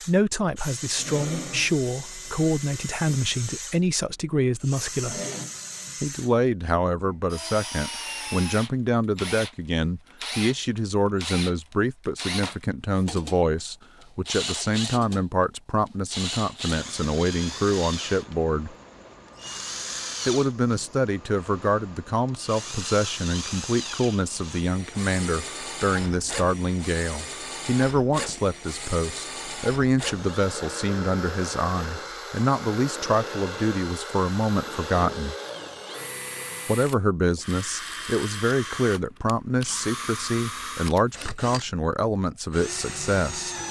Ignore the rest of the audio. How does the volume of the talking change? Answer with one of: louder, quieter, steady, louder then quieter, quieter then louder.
steady.